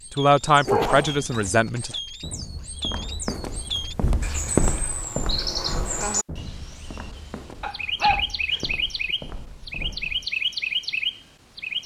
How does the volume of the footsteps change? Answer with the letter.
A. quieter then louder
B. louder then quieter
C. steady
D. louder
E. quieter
B.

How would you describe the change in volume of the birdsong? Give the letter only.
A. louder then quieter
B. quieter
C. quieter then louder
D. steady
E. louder
E.